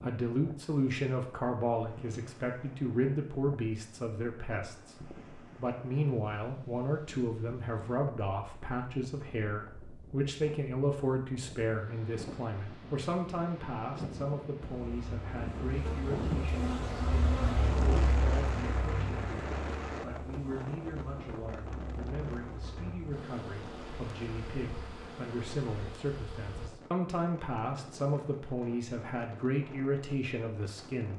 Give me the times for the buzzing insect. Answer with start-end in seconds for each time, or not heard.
14.6-26.7.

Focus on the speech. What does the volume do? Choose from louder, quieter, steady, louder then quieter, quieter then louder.
quieter then louder.